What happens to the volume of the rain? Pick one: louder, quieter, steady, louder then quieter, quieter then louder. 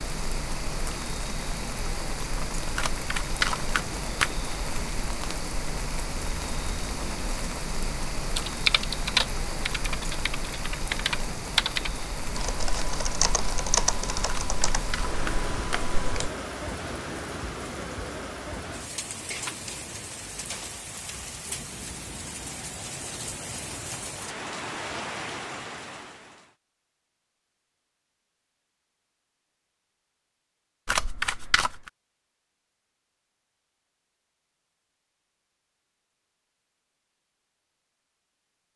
steady.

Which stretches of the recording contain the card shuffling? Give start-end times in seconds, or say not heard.
2.8-4.3, 14.2-15.8, 30.9-31.9.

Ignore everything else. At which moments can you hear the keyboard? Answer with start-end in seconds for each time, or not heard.
7.8-16.3.